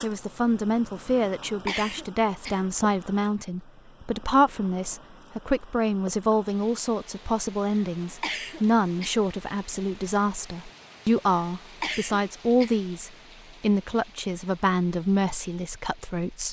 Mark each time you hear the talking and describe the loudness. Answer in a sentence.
You can hear the talking from 0.0 to 16.4 s, at a steady volume.